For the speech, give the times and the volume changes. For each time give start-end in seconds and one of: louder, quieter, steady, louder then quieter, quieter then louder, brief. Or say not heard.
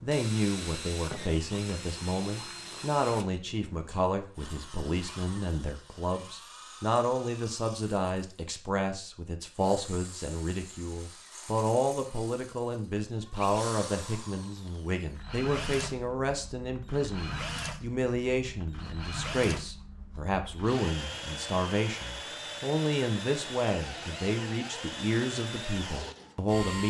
0.0-26.8 steady.